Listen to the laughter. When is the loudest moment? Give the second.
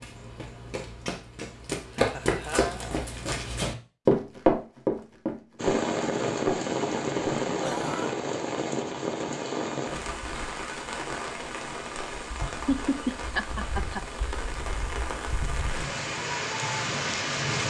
13 s.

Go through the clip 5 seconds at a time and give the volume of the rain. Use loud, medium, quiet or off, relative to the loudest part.
off, loud, medium, loud.